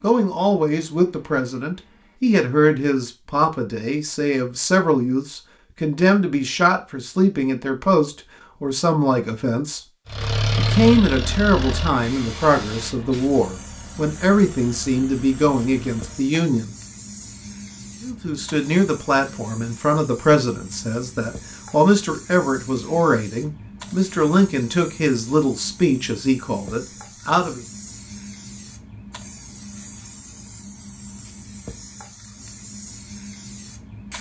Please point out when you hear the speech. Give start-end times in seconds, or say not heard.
0.0-9.8, 10.6-16.8, 18.0-27.6.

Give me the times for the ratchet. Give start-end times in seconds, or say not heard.
not heard.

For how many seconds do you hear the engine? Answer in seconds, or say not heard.
6 s.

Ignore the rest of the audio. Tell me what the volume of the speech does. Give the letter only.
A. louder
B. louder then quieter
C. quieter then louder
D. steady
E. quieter
D.